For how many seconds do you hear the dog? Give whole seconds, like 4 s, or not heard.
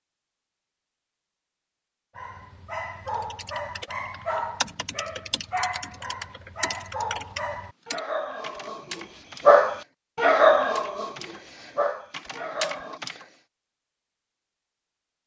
11 s.